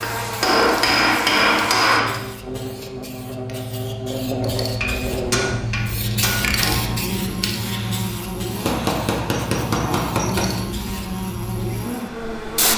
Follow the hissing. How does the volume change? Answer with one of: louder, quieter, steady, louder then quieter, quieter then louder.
louder then quieter.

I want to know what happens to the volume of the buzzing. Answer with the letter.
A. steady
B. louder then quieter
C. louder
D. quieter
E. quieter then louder
A.